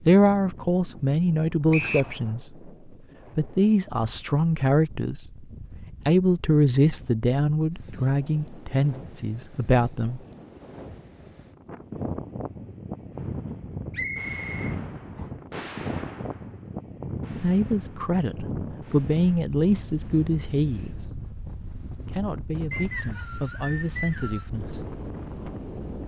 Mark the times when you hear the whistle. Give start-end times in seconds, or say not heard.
1.7-2.1, 13.9-15.2, 22.7-24.5.